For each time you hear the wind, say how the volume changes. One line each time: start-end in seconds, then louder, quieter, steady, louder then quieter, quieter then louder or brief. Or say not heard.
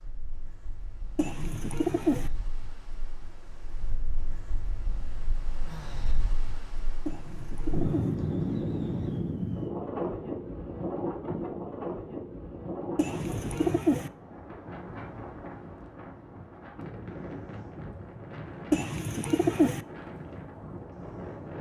0.0-21.5 louder then quieter.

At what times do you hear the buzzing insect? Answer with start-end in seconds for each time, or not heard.
not heard.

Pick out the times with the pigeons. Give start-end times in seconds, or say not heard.
1.1-2.3, 7.0-8.2, 12.9-14.1, 18.7-19.8.